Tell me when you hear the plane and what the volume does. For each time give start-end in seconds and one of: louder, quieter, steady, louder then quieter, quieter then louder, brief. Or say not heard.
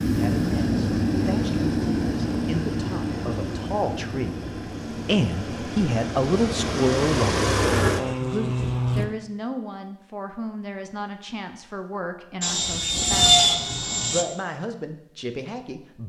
0.0-9.1 quieter then louder
12.4-14.2 brief.